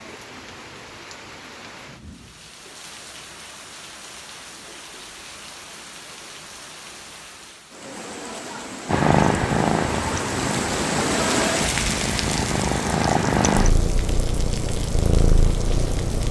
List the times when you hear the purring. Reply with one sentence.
You can hear the purring from 8.8 to 16.2 s.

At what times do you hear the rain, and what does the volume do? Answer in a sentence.
You can hear the rain from 0.0 to 16.2 s, getting louder then quieter.